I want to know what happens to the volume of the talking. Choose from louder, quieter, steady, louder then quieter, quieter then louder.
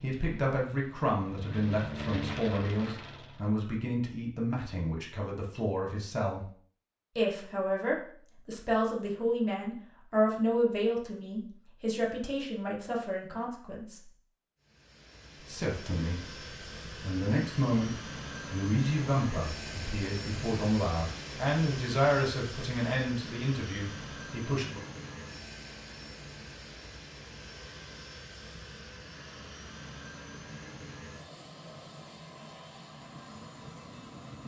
steady.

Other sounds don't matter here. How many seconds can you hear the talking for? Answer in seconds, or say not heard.
23 s.